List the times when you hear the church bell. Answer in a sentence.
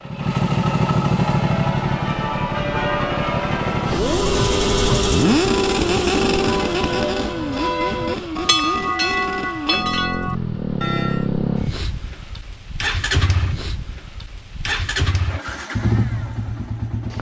You can hear the church bell from 1.2 to 11.3 s.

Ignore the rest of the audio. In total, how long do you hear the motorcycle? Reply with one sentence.
The motorcycle can be heard for 17 seconds in total.